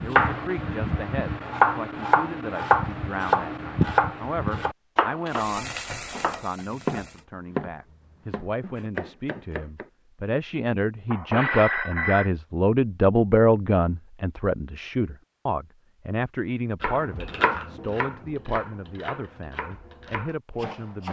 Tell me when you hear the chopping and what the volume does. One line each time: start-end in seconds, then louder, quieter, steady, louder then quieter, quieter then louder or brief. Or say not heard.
0.0-9.8 quieter
16.8-21.0 quieter.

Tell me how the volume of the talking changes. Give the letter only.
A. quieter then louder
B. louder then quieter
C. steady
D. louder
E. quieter
B.